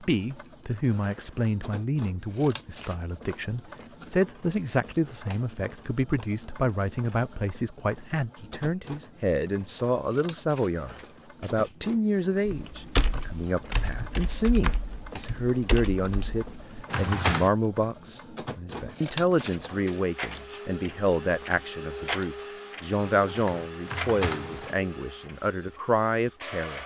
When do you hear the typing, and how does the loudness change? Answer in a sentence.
The typing can be heard from 12.4 to 17.5 s, getting quieter; and briefly from 23.0 to 24.8 s.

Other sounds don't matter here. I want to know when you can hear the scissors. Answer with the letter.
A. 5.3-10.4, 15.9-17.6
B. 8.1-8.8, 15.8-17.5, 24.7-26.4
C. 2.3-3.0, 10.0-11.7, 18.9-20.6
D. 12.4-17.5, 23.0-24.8
C.